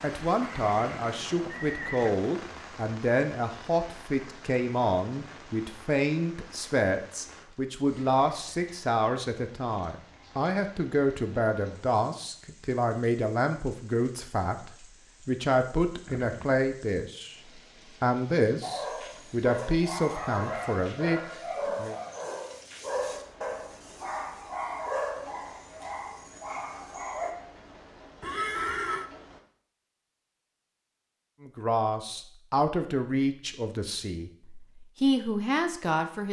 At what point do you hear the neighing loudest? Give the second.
29 s.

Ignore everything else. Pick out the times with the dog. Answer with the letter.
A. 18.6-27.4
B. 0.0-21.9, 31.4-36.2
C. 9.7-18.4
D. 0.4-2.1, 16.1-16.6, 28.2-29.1
A.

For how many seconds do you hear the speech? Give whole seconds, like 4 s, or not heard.
27 s.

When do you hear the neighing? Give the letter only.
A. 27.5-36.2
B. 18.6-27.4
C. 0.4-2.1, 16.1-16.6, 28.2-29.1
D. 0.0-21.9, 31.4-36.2
C.